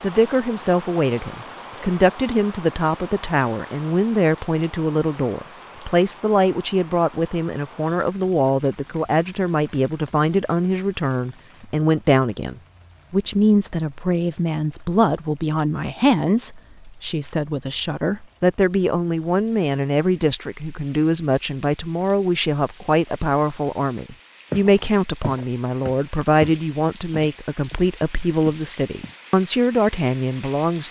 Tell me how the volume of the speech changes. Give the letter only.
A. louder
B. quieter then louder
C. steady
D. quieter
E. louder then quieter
C.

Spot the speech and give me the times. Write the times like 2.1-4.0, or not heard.
0.0-30.8.